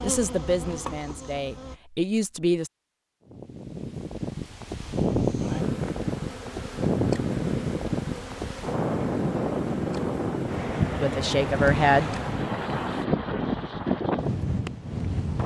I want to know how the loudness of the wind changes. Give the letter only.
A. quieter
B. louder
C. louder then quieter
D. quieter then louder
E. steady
E.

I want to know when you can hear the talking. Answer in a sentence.
The talking can be heard from 0.0 to 2.7 s and from 11.0 to 12.1 s.